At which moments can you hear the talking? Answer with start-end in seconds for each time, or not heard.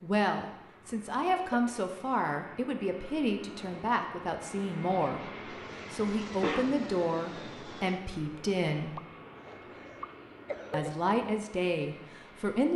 0.0-5.3, 5.9-8.9, 10.7-12.7.